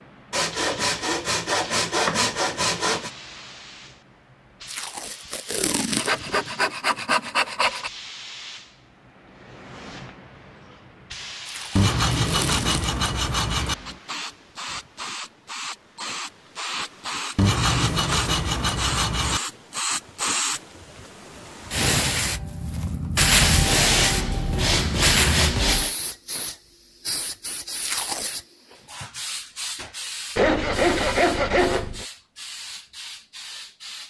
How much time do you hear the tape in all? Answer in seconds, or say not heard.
4 s.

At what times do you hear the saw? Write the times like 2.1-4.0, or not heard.
0.3-3.1, 6.0-7.9, 11.8-13.8, 17.4-19.4, 23.2-25.9, 30.4-32.0.